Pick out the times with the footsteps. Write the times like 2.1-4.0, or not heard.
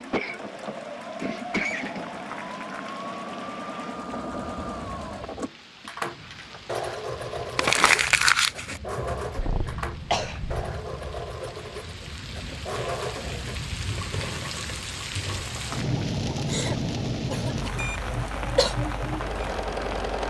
not heard.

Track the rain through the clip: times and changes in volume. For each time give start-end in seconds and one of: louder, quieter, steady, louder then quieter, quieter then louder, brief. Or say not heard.
0.0-20.2 louder.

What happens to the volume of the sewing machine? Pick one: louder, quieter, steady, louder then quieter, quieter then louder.
steady.